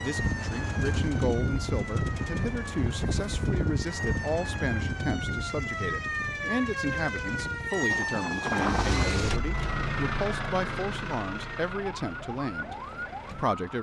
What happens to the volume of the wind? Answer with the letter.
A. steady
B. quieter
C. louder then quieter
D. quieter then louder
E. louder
D.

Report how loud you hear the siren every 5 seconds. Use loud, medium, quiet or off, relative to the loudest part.
medium, loud, medium.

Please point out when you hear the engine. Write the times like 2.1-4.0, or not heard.
0.1-13.7.